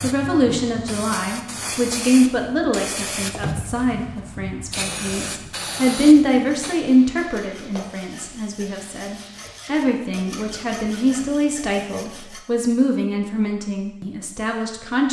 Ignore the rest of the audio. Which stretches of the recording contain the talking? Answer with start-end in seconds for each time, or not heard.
0.0-15.0.